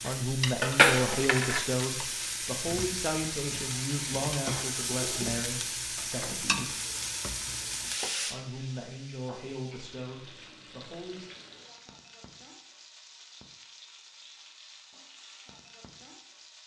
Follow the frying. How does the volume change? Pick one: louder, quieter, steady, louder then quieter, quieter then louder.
quieter.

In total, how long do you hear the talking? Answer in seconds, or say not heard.
10 s.